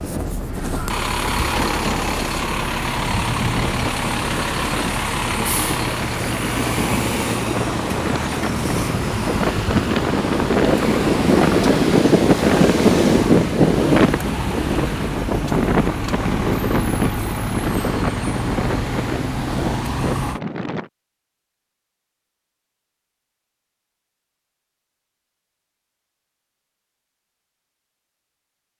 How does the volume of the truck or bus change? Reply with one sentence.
The loudness of the truck or bus stays about the same.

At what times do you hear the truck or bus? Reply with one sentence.
You can hear the truck or bus from 0.0 to 20.4 s.